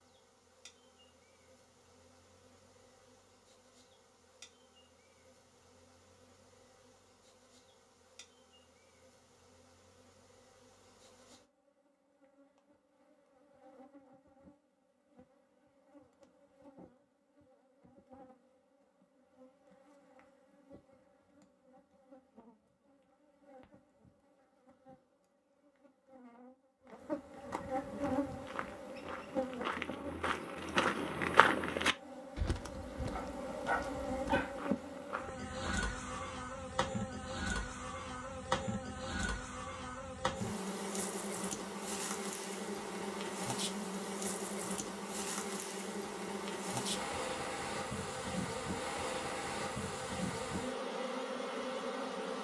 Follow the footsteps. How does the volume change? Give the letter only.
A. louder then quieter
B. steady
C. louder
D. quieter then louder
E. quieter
A.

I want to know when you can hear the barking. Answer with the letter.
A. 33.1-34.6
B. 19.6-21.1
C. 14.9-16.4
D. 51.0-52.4
A.